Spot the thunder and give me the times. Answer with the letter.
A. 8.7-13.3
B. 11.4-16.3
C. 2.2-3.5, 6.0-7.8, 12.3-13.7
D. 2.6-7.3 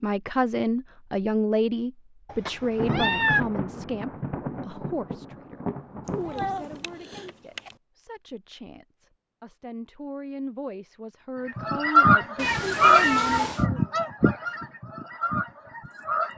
D.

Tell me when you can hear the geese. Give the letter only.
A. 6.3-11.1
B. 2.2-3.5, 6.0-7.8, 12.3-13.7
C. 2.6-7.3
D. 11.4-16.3
D.